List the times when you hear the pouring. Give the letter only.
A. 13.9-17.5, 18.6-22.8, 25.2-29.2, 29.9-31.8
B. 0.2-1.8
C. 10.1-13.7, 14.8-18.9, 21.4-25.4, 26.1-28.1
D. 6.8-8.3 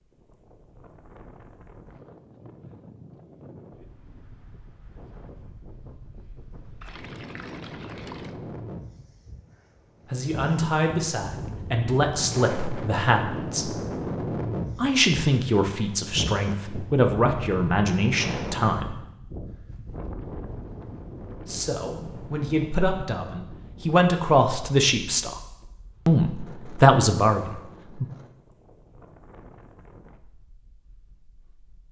D.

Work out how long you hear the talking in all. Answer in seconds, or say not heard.
14 s.